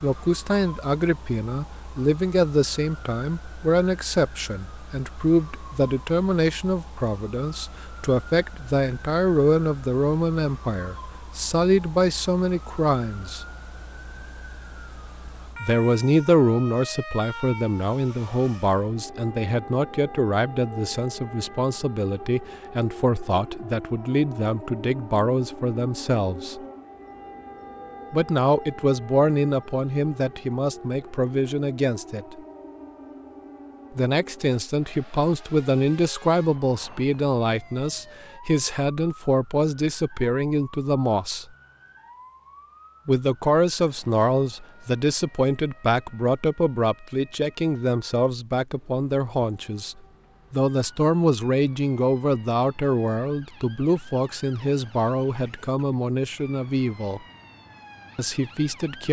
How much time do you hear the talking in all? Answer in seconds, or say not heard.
51 s.